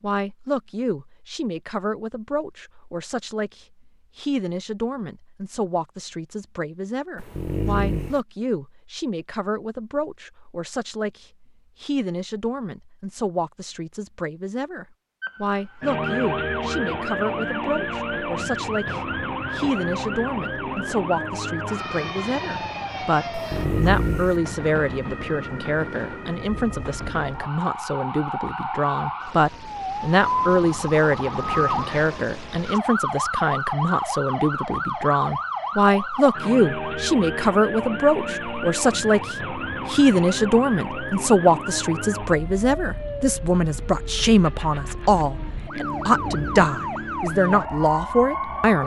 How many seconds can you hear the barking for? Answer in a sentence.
You can hear the barking for 3 seconds altogether.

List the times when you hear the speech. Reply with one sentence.
The speech can be heard from 0.0 to 48.8 s.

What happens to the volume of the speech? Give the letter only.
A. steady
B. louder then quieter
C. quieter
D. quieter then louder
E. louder
E.